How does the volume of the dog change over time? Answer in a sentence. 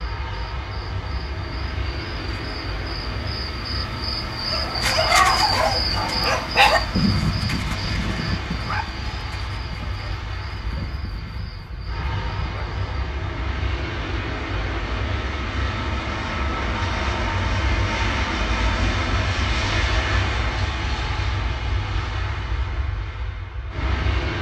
The volume of the dog goes down.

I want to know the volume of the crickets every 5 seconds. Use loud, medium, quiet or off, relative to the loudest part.
loud, loud, quiet, off, off.